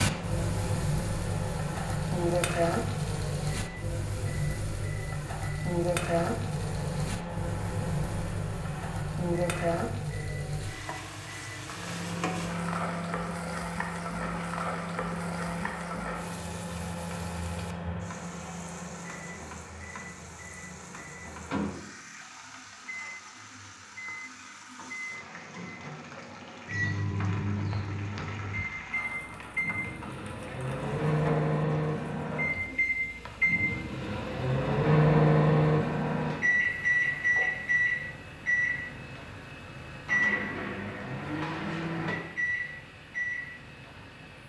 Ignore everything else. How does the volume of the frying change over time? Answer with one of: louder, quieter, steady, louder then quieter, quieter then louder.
quieter.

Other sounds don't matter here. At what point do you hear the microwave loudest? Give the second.
35 s.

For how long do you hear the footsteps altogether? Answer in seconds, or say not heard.
not heard.